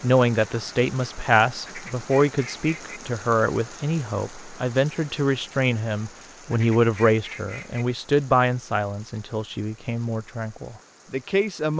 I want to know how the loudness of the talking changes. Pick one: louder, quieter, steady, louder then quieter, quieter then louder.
quieter.